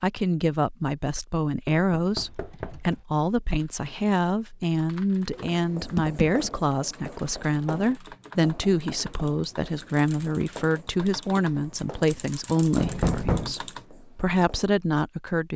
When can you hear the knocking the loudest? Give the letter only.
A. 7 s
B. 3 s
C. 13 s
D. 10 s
C.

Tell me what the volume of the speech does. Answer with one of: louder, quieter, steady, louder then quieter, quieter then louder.
steady.